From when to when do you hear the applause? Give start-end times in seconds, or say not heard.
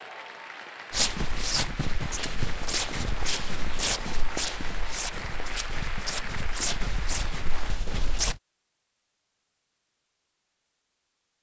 0.0-7.8.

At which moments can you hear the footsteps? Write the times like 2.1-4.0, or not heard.
0.9-8.3.